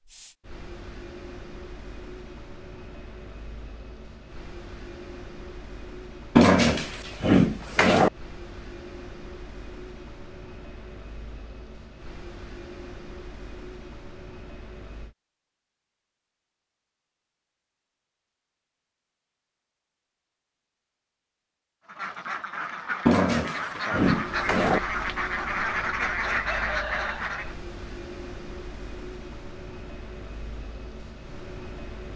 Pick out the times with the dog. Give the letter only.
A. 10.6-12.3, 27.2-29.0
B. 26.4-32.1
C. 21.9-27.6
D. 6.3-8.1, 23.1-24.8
D.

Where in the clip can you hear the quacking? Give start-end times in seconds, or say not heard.
21.9-27.6.